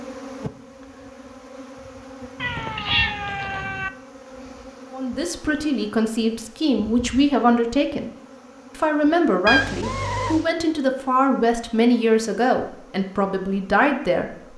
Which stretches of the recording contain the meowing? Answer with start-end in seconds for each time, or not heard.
2.4-3.9, 9.4-10.4.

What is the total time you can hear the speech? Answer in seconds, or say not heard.
9 s.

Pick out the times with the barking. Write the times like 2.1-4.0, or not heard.
not heard.